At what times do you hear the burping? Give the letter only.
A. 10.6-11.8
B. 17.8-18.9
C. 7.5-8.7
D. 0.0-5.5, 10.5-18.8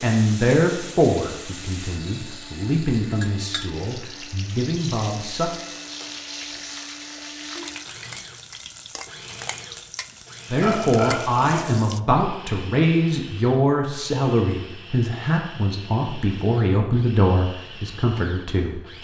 A.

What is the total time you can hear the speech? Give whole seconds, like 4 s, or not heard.
14 s.